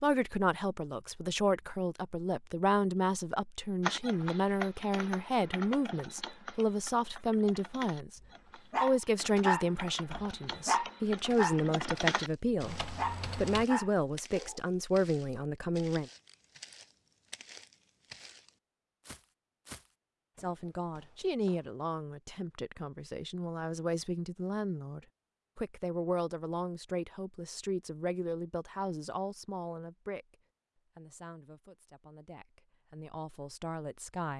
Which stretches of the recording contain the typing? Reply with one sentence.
You can hear the typing from 3.8 to 13.7 s.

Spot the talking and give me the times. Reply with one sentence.
You can hear the talking from 0.0 to 16.1 s, from 20.4 to 30.4 s and from 30.9 to 34.3 s.